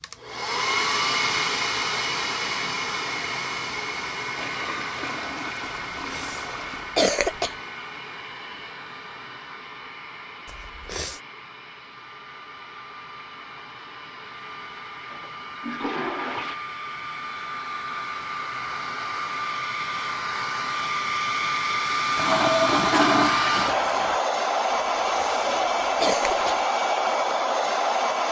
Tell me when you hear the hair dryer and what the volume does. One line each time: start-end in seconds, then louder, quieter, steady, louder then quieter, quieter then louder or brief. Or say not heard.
0.0-28.2 quieter then louder.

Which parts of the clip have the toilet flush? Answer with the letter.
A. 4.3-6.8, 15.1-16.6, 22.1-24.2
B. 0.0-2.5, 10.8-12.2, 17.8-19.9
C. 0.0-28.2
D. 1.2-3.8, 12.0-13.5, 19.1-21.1
A.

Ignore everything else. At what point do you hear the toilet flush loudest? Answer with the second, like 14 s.
23 s.